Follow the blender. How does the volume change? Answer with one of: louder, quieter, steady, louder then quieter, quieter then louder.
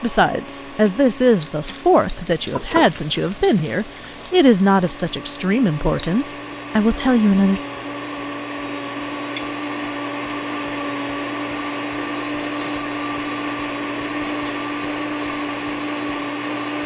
louder.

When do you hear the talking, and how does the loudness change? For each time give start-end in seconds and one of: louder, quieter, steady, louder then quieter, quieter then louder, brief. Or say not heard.
0.0-7.6 steady.